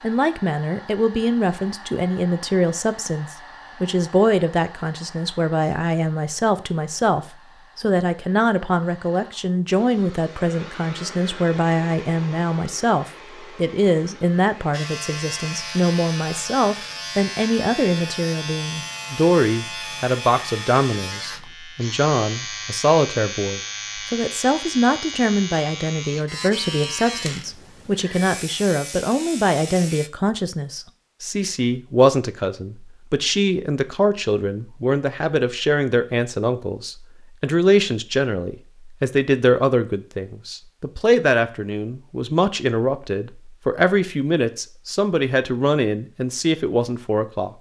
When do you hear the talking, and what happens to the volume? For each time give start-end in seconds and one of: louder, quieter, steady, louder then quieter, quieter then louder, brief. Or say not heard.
0.0-47.5 steady.